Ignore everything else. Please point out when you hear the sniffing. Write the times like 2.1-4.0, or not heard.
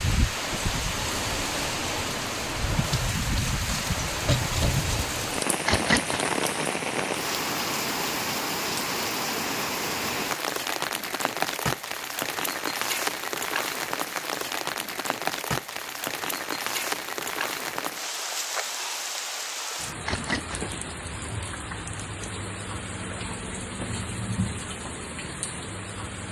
5.7-6.2, 20.1-20.6.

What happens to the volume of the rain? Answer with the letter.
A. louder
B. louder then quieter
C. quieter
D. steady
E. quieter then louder
C.